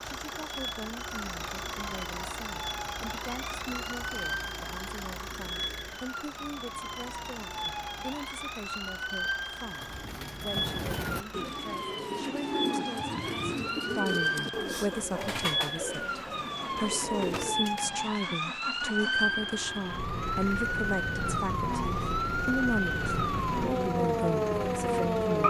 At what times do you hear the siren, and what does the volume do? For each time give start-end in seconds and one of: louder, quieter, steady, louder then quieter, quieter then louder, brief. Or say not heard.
0.0-25.4 louder.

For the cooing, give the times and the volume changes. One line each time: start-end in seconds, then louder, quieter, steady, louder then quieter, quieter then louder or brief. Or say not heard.
9.6-18.0 steady.